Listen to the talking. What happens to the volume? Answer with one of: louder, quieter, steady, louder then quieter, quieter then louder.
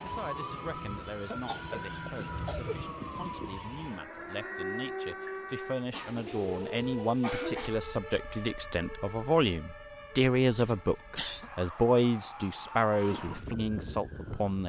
louder.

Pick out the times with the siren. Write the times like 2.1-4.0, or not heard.
0.0-14.6.